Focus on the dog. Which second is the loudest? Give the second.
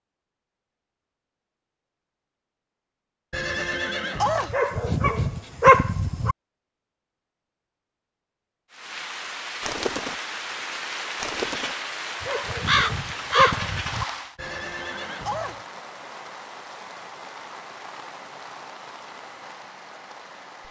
6 s.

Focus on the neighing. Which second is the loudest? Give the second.
4 s.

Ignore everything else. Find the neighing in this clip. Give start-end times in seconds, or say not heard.
3.3-4.5, 14.3-15.7.